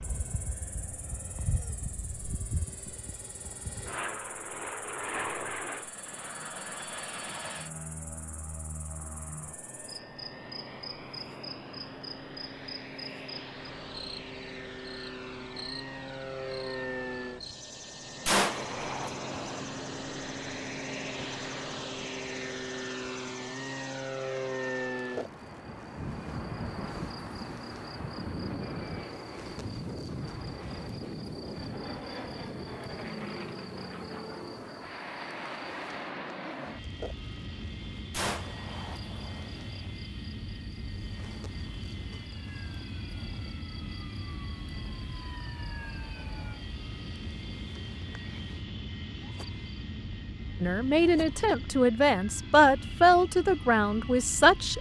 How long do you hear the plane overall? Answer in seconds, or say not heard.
55 s.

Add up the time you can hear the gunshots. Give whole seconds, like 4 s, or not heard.
3 s.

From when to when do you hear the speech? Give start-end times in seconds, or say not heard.
50.6-54.7.